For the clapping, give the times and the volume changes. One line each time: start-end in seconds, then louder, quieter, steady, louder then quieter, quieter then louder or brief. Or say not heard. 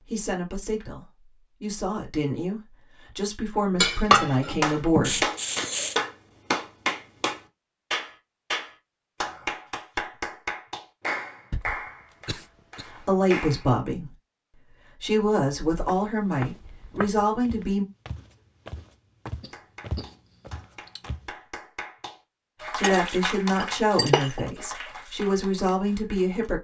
4.6-13.8 quieter
19.4-26.5 louder then quieter.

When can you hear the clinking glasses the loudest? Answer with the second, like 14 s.
4 s.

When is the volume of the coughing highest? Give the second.
6 s.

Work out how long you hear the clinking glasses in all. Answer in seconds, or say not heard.
3 s.